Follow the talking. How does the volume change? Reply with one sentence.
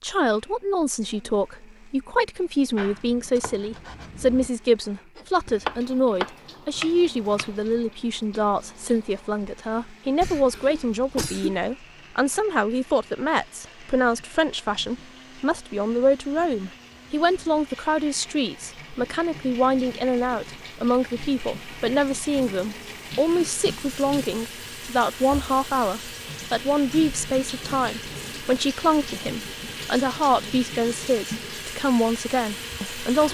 The volume of the talking stays about the same.